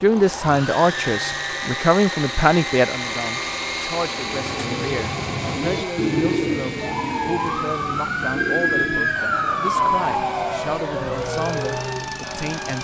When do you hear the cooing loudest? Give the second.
6 s.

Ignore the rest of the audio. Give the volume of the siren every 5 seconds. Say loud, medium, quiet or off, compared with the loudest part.
quiet, loud, loud.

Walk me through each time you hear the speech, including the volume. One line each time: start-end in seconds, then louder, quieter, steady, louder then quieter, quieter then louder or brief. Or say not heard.
0.0-12.7 quieter.